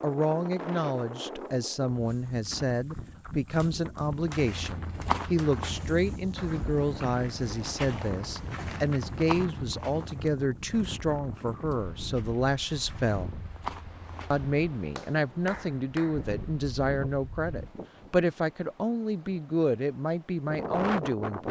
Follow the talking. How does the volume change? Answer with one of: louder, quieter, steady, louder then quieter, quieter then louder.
steady.